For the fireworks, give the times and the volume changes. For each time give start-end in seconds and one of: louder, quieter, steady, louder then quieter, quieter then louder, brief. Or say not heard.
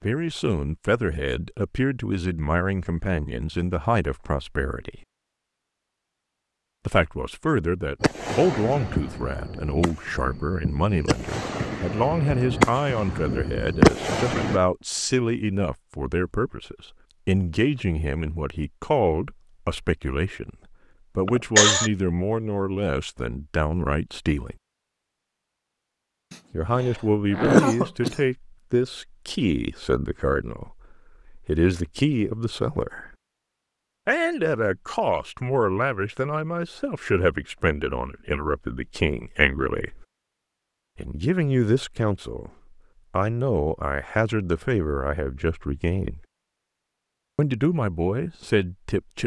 8.0-14.6 quieter then louder.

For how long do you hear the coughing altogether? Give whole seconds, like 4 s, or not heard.
2 s.